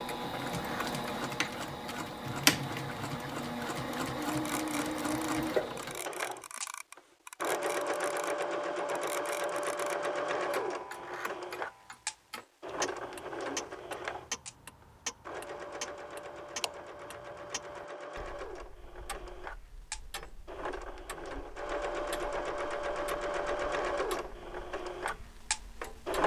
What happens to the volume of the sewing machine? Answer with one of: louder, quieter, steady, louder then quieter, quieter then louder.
quieter then louder.